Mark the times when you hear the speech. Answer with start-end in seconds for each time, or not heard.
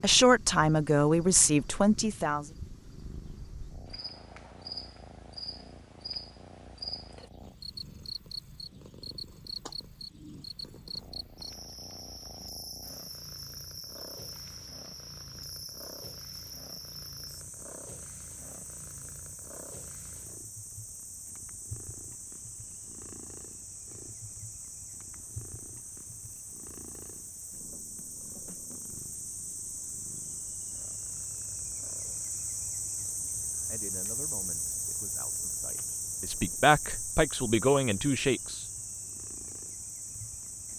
0.0-2.5, 33.6-38.6.